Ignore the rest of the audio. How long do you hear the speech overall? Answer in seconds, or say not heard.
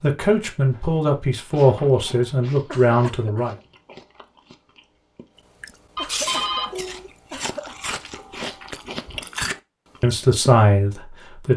5 s.